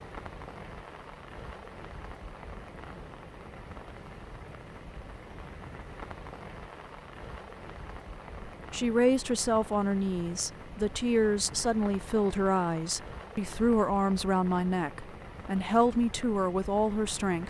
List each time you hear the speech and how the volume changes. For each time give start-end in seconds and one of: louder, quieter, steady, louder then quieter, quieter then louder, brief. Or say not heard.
8.7-17.4 steady.